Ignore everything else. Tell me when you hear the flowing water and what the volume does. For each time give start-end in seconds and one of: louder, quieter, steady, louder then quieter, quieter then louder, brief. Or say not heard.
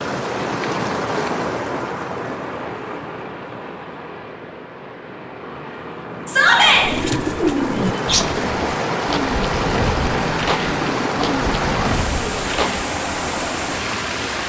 0.0-14.4 quieter then louder.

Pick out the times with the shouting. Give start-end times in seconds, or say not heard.
6.2-6.8.